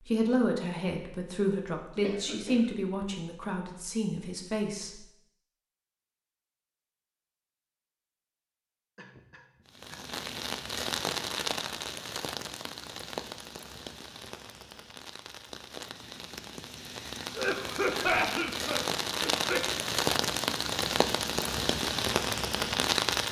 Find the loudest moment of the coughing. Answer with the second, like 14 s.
18 s.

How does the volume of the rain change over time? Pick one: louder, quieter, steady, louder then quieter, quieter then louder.
quieter then louder.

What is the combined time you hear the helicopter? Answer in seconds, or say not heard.
not heard.